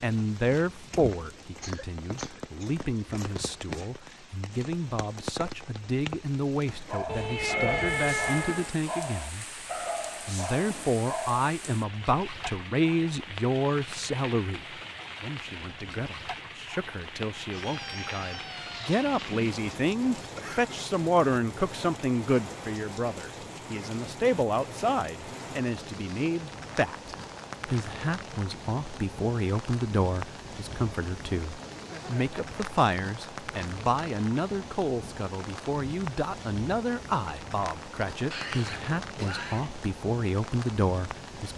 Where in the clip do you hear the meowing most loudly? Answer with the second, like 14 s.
8 s.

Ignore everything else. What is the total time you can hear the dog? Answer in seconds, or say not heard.
5 s.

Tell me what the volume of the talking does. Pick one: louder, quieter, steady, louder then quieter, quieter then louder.
steady.